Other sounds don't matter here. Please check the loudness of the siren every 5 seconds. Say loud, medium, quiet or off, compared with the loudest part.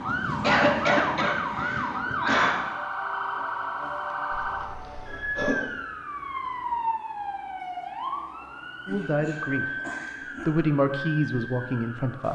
loud, loud, medium.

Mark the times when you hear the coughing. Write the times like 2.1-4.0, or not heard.
0.4-2.5, 4.3-5.5, 8.8-10.5.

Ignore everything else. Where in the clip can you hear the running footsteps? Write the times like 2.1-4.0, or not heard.
not heard.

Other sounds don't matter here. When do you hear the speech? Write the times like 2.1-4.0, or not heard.
8.8-9.7, 10.3-12.2.